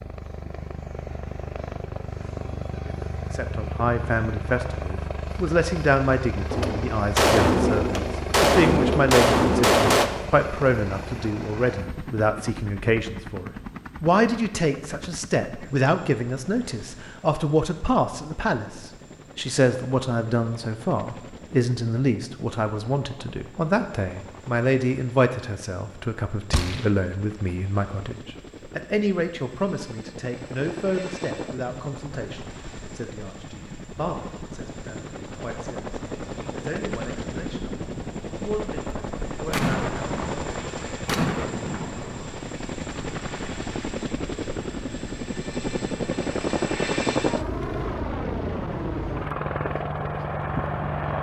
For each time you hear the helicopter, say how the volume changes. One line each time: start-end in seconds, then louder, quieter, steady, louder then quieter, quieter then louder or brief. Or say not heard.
0.0-51.1 quieter then louder.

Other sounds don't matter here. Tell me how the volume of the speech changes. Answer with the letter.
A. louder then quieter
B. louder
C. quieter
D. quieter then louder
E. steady
C.